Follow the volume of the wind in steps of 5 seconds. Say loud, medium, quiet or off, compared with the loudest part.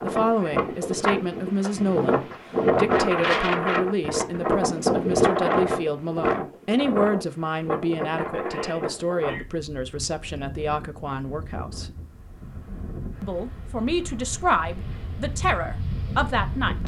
loud, loud, quiet, medium.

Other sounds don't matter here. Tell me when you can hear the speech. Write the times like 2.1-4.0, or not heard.
0.0-11.9, 13.2-16.8.